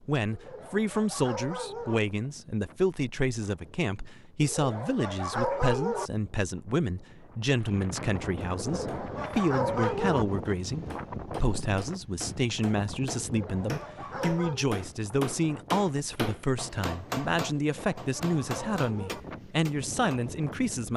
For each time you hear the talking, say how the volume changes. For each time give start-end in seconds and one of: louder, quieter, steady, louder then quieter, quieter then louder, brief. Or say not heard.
0.1-20.9 steady.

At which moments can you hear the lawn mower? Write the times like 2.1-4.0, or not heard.
not heard.